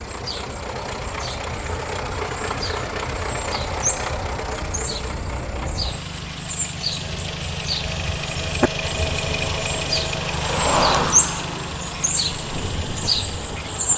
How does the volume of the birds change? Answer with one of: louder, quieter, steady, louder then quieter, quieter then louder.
louder.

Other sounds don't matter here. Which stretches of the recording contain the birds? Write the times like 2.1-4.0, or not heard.
0.0-13.9.